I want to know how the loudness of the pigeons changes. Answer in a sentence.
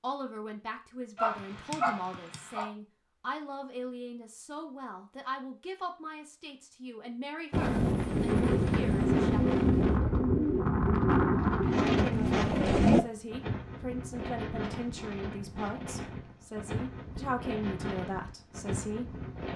The loudness of the pigeons stays about the same.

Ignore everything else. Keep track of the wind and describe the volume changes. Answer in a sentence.
The volume of the wind goes down.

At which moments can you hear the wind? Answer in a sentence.
You can hear the wind from 7.5 to 19.5 s.